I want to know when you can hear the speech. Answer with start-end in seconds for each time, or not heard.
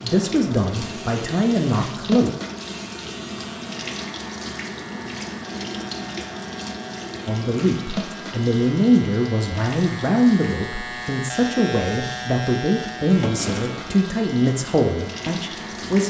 0.0-2.3, 7.2-16.0.